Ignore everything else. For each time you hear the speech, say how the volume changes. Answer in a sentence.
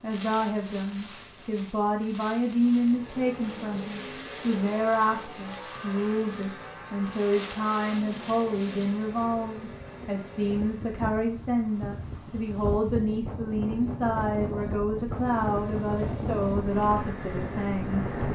You can hear the speech from 0.0 to 18.1 s, at a steady volume.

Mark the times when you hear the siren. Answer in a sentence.
The siren can't be heard in this clip.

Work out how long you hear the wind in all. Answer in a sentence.
You can hear the wind for 18 seconds altogether.